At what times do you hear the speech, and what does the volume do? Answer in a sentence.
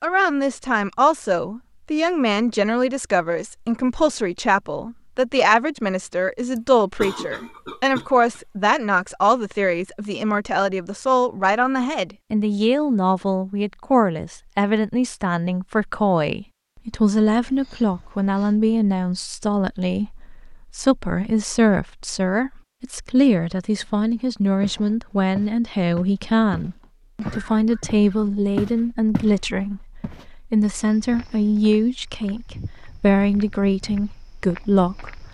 The speech can be heard from 0.0 to 35.2 s, at a steady volume.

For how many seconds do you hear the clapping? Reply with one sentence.
The clapping can't be heard in this clip.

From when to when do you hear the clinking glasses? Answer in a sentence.
The clinking glasses can't be heard in this clip.